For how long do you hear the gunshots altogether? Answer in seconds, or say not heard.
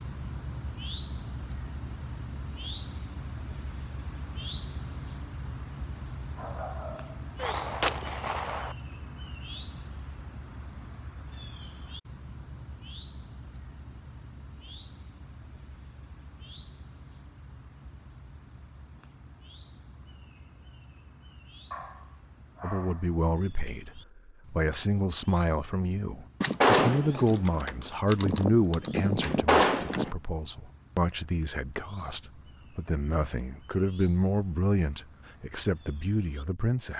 5 s.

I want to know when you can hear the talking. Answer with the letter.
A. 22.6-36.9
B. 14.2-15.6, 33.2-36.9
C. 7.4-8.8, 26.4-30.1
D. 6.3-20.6
A.